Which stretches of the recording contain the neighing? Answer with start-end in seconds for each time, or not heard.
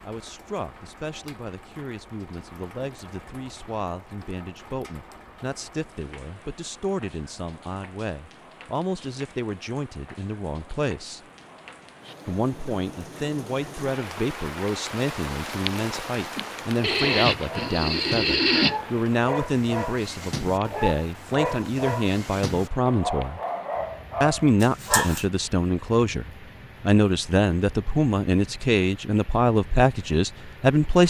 16.8-18.8.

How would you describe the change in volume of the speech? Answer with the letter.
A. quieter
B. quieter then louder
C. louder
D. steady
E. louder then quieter
C.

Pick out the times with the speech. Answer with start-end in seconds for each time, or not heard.
0.0-11.2, 12.2-23.4, 24.2-31.0.